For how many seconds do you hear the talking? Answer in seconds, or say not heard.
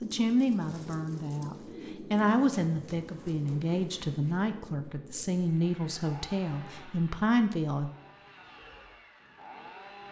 8 s.